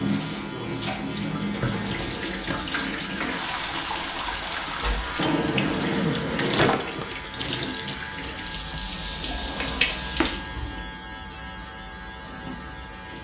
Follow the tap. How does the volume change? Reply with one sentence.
The loudness of the tap goes down.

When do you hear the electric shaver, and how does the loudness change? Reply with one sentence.
The electric shaver can be heard from 0.0 to 13.1 s, at a steady volume.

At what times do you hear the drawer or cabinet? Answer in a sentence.
You can hear the drawer or cabinet from 1.5 to 2.8 s, from 5.2 to 7.0 s and from 9.2 to 10.3 s.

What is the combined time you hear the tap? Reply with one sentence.
The tap can be heard for 13 seconds in total.